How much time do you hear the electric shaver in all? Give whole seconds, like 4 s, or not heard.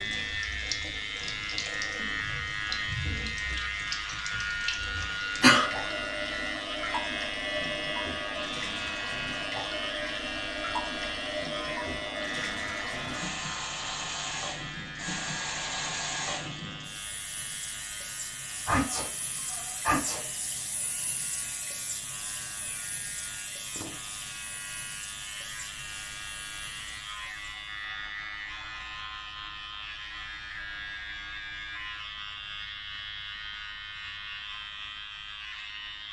36 s.